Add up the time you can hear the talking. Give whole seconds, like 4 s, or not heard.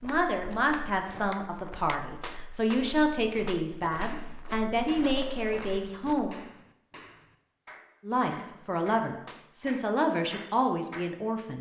10 s.